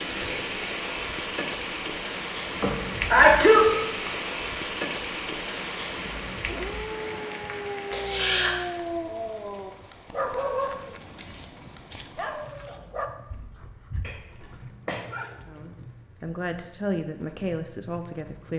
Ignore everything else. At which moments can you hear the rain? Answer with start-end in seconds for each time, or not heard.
0.0-18.5.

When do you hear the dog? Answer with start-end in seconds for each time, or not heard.
6.5-15.6.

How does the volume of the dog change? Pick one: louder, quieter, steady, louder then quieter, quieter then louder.
quieter.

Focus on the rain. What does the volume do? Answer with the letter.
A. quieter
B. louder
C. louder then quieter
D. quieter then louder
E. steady
A.